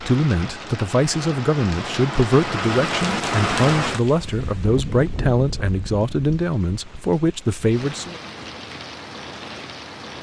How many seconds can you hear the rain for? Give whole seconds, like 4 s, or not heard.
10 s.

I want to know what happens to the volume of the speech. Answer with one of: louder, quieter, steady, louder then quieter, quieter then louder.
steady.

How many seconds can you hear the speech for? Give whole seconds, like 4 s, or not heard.
8 s.